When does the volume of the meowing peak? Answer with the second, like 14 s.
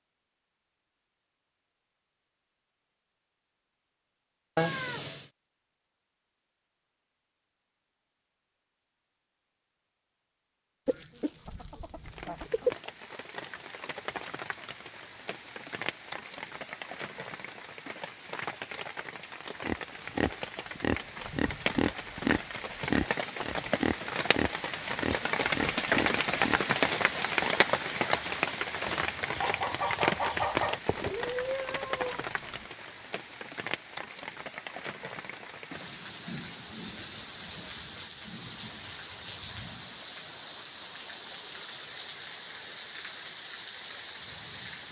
5 s.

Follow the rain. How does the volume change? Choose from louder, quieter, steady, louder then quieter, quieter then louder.
louder then quieter.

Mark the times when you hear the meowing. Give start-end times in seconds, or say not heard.
4.5-5.3, 30.9-32.6.